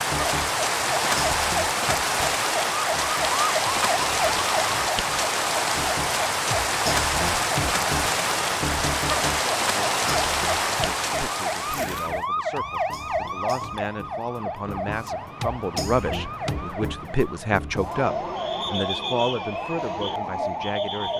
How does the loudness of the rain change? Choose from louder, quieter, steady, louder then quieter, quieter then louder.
steady.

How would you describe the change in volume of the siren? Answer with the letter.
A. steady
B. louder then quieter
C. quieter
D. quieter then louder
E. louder
A.